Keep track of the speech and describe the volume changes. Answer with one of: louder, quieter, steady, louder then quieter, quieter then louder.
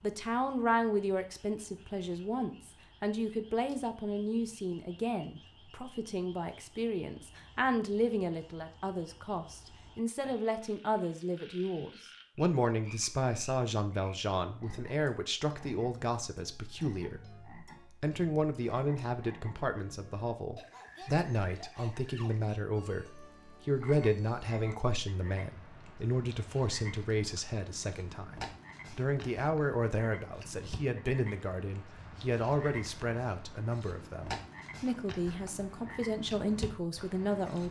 steady.